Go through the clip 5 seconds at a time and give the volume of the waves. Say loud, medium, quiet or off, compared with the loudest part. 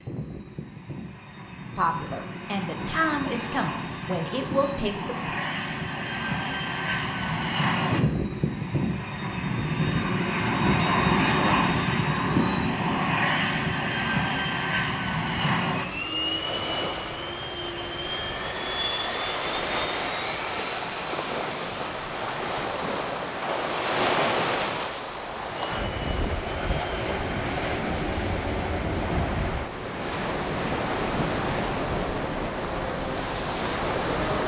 off, off, off, medium, loud, loud, loud.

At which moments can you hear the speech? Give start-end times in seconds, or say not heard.
1.8-5.3.